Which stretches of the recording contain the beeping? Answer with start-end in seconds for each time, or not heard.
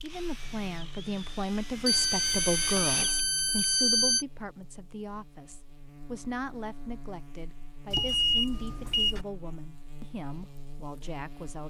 1.9-4.2, 7.9-9.2.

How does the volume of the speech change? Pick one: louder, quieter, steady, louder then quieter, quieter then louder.
quieter.